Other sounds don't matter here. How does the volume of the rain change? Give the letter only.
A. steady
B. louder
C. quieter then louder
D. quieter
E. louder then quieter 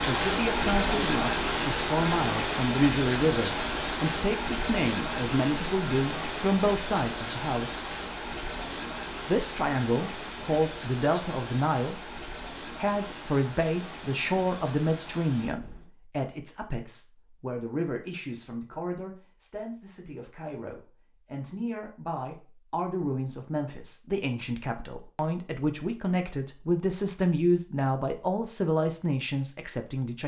D.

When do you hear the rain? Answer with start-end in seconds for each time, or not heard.
0.0-15.9.